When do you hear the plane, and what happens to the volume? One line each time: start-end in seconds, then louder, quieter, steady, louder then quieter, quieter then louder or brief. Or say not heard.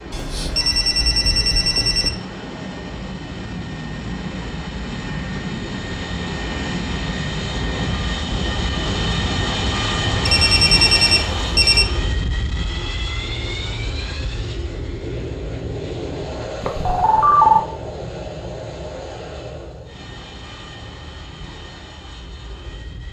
0.0-23.0 louder then quieter.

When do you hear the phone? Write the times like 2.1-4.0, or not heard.
0.1-2.1, 10.2-11.8, 16.6-17.6.